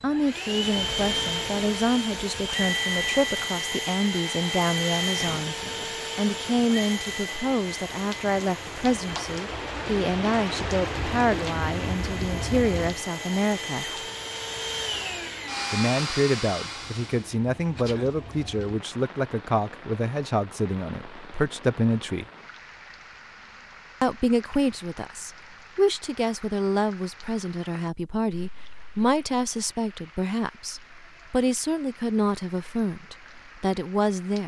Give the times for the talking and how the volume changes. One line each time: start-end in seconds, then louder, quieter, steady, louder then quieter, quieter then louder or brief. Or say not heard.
0.0-5.5 steady
6.2-13.8 steady
15.7-22.2 steady
24.0-34.4 steady.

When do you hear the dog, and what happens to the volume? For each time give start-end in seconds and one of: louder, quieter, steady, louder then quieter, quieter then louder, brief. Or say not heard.
not heard.